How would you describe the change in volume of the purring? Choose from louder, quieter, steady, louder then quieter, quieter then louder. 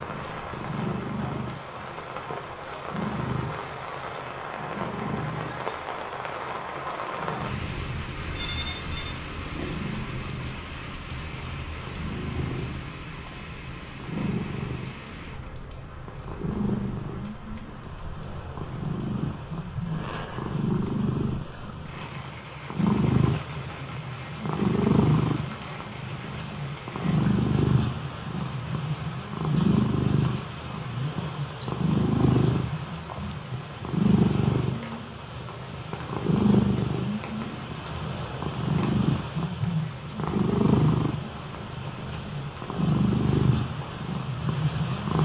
louder.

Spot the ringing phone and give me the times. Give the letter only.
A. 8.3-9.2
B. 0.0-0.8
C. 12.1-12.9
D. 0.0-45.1
A.